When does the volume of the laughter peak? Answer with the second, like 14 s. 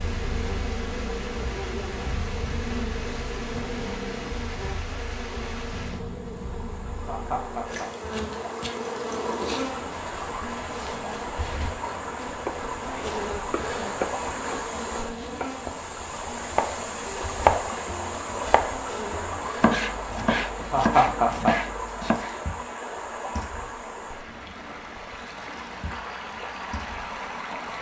21 s.